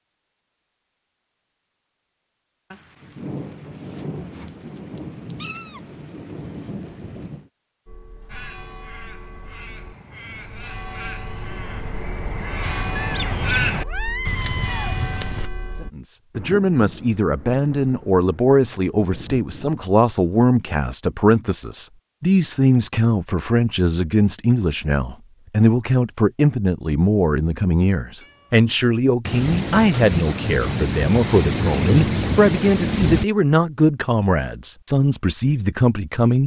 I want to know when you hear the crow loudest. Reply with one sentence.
The volume of the crow peaks at 14 seconds.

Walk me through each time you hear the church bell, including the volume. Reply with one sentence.
The church bell can be heard from 7.8 to 15.9 s, getting louder.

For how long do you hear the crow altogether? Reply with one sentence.
You can hear the crow for 7 seconds altogether.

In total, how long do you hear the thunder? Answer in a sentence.
The thunder can be heard for 12 seconds in total.